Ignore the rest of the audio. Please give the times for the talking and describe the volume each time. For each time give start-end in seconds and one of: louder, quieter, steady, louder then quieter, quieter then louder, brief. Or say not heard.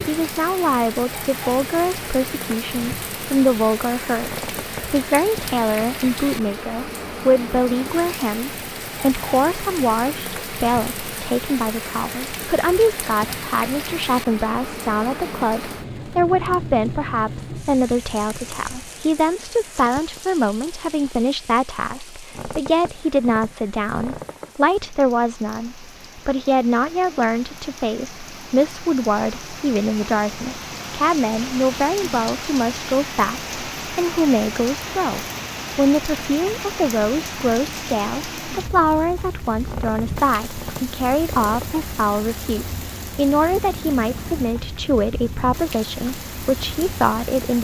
0.1-47.5 steady.